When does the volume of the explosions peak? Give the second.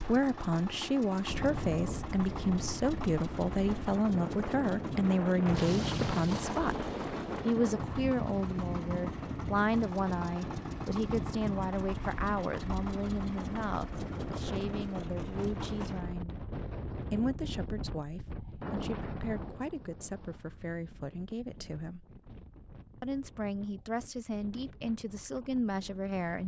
6 s.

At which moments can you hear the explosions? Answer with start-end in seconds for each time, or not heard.
5.5-7.5.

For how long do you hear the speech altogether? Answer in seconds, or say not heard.
24 s.